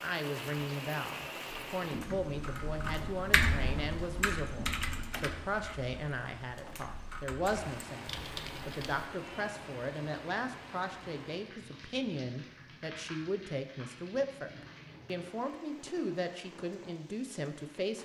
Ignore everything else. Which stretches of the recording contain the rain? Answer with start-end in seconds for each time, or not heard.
0.0-18.0.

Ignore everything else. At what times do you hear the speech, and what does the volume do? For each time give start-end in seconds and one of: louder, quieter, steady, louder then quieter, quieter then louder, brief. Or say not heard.
0.0-18.0 steady.